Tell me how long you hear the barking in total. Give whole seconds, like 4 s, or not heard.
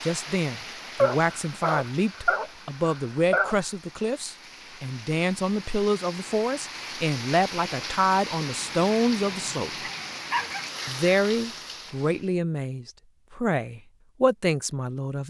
4 s.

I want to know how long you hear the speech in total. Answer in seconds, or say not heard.
14 s.